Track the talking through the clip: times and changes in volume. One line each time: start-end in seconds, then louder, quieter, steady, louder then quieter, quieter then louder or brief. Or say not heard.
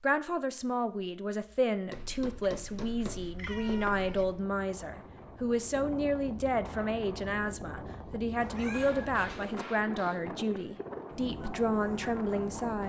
0.0-12.8 steady.